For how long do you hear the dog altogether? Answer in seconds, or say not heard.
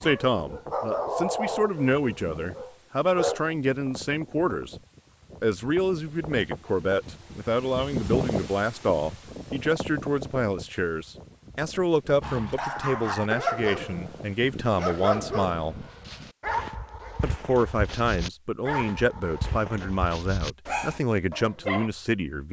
13 s.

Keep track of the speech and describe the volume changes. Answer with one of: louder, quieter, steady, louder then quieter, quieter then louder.
steady.